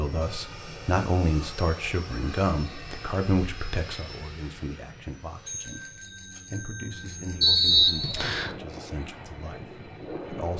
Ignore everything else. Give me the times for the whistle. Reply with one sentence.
The whistle can be heard from 7.4 to 8.6 s.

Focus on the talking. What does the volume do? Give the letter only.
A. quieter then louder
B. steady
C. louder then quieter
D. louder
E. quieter
E.